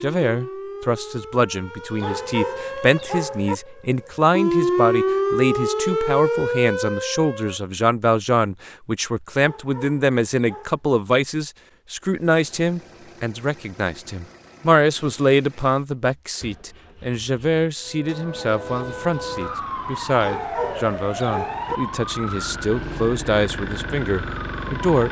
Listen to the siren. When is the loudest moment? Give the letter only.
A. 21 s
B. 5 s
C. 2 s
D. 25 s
B.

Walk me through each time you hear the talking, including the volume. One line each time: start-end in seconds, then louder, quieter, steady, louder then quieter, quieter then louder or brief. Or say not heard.
0.0-25.0 steady.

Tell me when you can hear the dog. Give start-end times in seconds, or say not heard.
2.0-3.5, 9.4-10.8, 20.2-21.8.